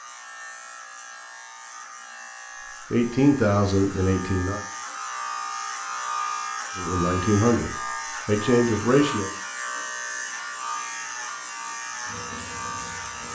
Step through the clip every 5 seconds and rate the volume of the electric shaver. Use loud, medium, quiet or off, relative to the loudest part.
medium, loud, loud.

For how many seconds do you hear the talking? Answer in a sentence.
The talking can be heard for 4 seconds in total.